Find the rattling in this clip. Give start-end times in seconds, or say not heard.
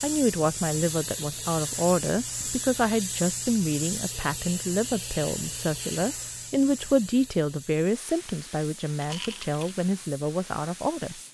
9.0-9.7.